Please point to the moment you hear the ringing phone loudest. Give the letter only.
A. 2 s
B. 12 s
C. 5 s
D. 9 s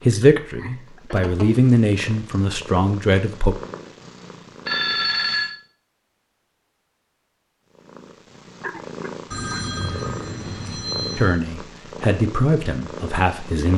C.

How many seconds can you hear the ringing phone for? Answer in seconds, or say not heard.
3 s.